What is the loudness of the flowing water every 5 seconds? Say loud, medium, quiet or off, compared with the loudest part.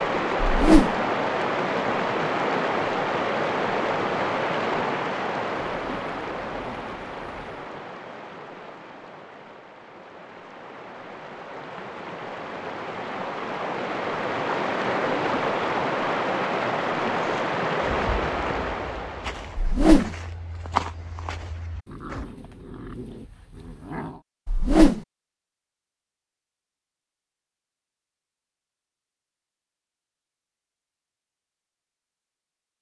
loud, medium, medium, loud, off, off, off.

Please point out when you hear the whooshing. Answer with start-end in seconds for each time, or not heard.
0.4-0.9, 19.6-20.1, 24.4-25.0.